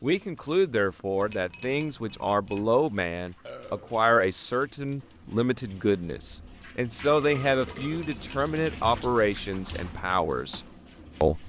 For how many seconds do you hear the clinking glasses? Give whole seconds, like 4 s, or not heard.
2 s.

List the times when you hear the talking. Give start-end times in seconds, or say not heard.
0.0-11.4.